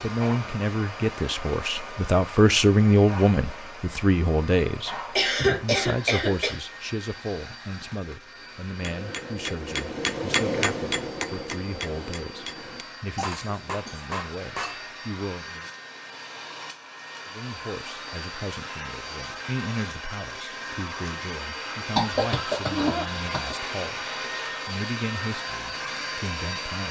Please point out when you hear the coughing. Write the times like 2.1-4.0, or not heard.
5.2-6.5, 13.2-14.1, 21.9-23.6.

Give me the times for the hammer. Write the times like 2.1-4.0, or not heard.
8.8-14.9.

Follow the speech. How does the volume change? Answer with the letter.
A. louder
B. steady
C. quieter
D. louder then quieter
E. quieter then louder
C.